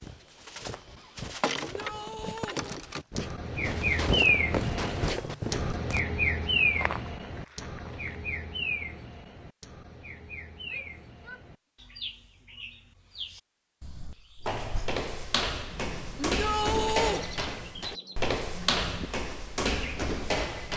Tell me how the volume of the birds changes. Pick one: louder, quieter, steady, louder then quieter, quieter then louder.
louder then quieter.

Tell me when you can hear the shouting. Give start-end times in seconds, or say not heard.
1.6-2.6, 10.7-11.4, 16.2-17.2.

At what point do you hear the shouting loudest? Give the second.
17 s.